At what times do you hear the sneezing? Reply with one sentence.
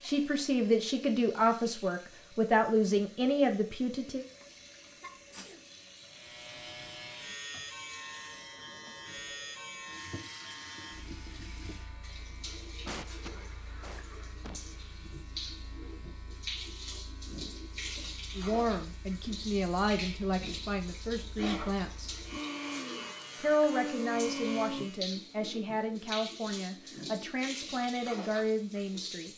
You can hear the sneezing from 4.4 to 5.6 s, from 12.8 to 14.6 s and from 22.3 to 24.9 s.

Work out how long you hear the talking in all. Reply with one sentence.
You can hear the talking for 14 seconds altogether.